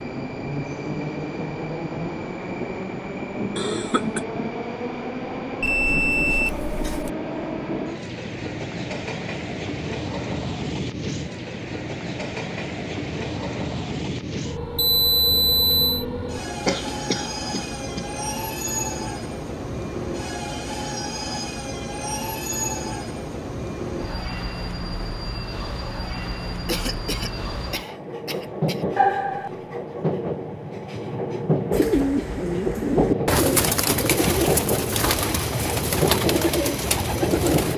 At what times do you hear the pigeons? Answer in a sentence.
You can hear the pigeons from 31.7 to 37.7 s.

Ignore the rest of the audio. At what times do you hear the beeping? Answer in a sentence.
You can hear the beeping from 5.6 to 7.1 s, from 14.8 to 16.1 s and from 28.9 to 29.5 s.